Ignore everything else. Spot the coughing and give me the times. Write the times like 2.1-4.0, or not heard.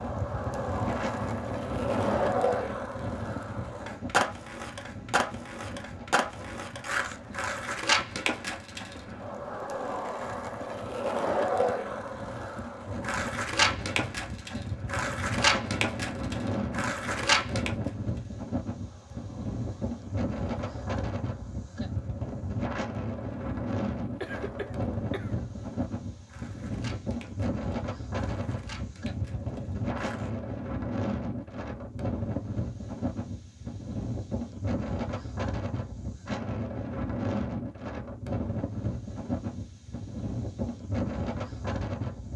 24.2-25.4.